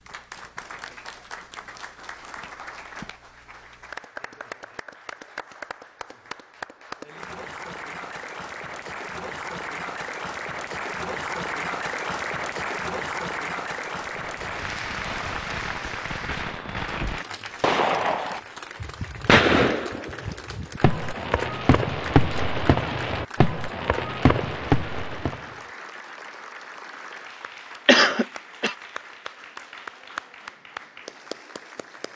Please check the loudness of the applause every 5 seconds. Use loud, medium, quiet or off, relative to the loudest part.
medium, medium, loud, medium, medium, medium, medium.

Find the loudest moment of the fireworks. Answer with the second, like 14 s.
19 s.